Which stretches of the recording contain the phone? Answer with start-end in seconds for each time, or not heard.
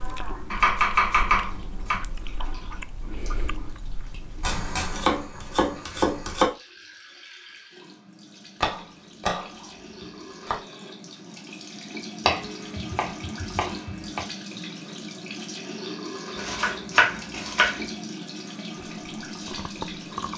not heard.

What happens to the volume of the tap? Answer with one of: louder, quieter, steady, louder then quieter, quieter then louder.
louder.